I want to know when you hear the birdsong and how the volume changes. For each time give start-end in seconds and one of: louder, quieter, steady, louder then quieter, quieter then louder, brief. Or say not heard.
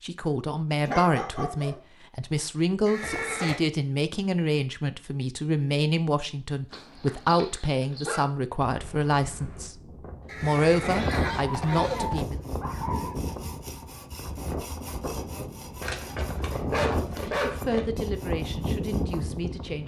not heard.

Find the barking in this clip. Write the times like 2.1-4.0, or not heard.
0.8-1.8, 6.7-8.2, 11.3-13.2, 15.8-17.9.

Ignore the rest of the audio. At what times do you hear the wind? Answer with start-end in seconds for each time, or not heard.
8.7-19.8.